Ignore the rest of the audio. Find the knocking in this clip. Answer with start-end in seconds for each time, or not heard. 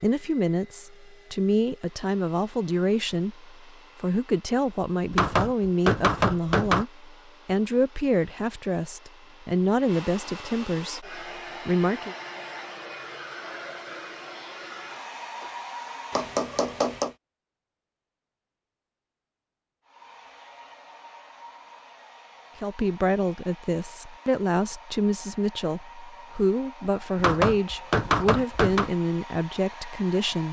5.1-6.8, 16.1-17.1, 27.1-28.9.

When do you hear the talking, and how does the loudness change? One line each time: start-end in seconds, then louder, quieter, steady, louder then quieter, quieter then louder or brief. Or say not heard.
0.0-12.2 steady
22.6-30.4 steady.